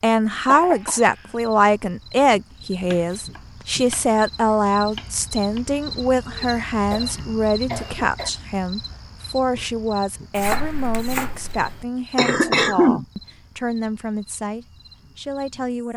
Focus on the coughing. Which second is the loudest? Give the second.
13 s.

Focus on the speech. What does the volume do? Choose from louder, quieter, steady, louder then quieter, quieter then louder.
quieter.